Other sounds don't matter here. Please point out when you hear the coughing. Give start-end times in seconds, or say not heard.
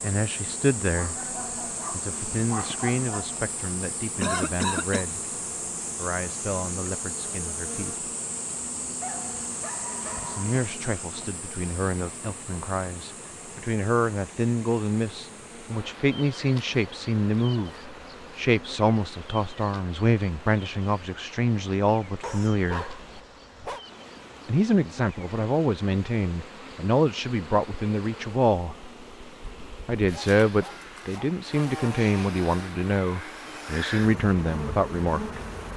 4.2-5.0.